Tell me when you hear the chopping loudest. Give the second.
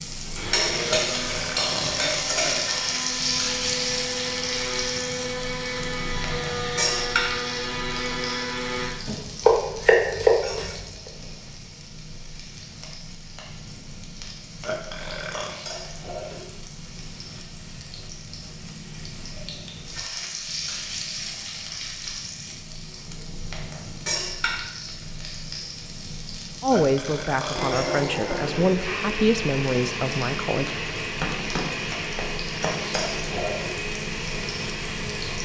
10 s.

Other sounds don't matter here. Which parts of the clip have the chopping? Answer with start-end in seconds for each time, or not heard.
9.1-10.8, 31.2-33.0.